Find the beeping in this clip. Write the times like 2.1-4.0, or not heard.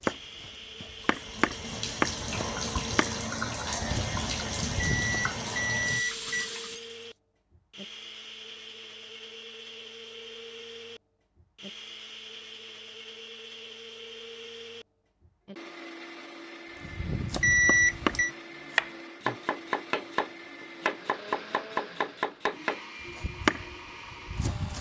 4.9-6.5, 17.3-18.3.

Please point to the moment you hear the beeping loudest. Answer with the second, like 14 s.
18 s.